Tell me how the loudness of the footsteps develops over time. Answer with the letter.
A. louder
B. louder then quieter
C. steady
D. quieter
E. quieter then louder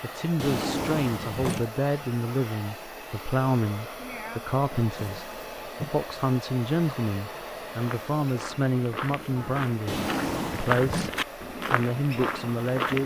A.